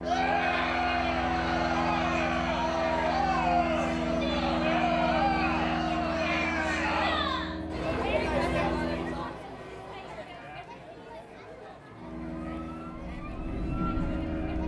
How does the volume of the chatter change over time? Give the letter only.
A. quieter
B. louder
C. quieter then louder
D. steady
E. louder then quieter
A.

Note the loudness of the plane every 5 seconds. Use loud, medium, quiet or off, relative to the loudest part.
loud, loud, medium.